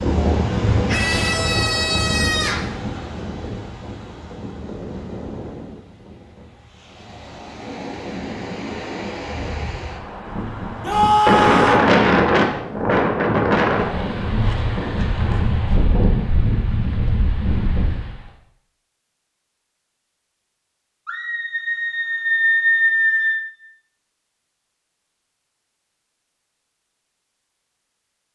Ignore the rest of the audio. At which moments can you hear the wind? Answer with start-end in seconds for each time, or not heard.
0.0-18.3.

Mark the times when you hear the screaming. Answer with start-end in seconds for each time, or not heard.
0.8-2.7, 10.8-11.9, 21.1-23.4.